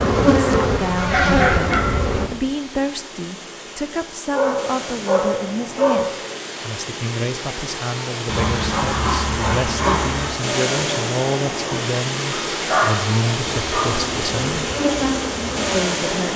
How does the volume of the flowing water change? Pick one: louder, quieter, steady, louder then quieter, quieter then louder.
louder.